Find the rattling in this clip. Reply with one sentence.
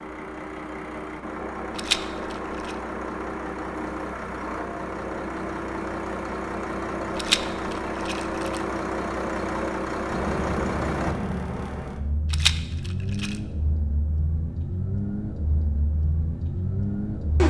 You can hear the rattling from 1.8 to 2.8 s, from 7.2 to 8.6 s and from 12.3 to 13.3 s.